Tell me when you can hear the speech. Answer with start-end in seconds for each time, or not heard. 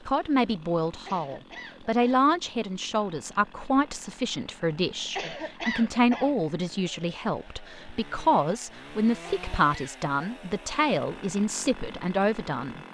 0.1-12.8.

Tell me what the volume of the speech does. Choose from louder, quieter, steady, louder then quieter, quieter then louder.
steady.